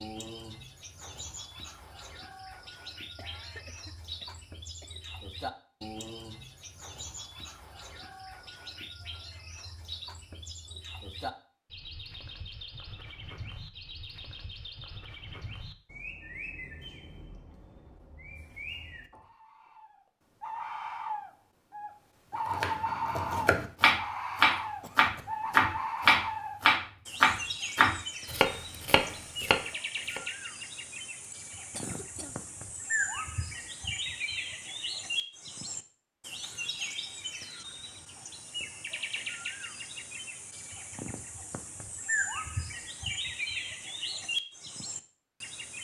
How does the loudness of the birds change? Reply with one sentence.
The volume of the birds goes up.